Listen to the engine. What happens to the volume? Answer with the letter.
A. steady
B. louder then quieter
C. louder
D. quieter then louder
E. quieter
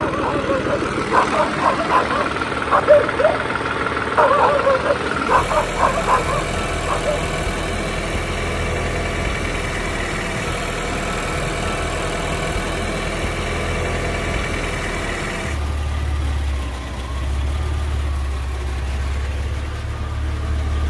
E.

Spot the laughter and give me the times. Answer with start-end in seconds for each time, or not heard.
not heard.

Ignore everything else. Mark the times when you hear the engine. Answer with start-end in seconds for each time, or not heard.
0.0-20.8.